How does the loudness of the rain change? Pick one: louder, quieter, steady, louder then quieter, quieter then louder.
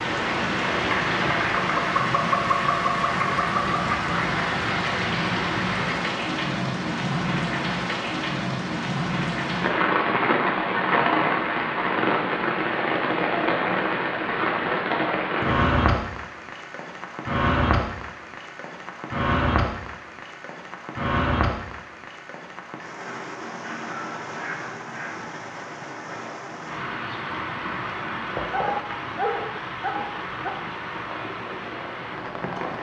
quieter.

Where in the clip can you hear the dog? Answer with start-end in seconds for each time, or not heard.
28.5-30.5.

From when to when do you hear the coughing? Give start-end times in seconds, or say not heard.
not heard.